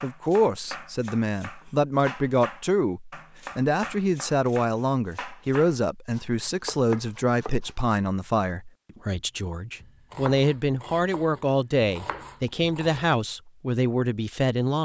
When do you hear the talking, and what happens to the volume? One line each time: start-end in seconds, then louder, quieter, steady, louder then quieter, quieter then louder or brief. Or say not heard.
0.0-14.8 steady.